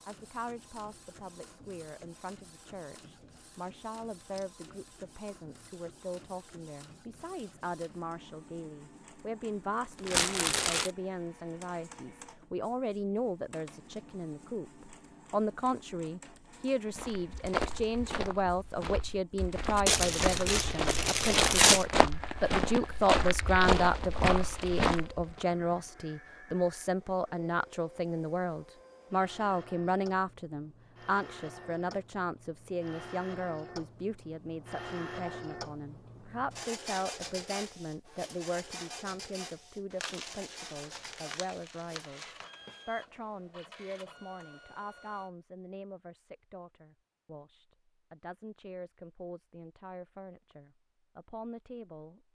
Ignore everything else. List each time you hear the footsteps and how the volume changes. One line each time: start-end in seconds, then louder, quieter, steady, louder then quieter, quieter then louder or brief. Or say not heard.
16.9-25.4 louder.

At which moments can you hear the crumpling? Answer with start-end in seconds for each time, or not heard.
10.1-10.9, 19.9-21.9, 40.0-42.5.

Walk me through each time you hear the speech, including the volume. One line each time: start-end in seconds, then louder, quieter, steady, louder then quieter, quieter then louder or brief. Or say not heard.
0.1-52.2 louder then quieter.